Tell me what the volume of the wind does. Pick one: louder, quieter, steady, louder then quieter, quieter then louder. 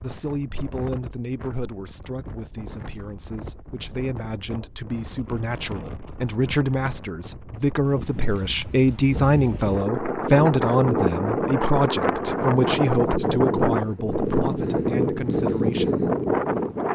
louder.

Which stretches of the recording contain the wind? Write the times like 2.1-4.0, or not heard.
0.0-16.9.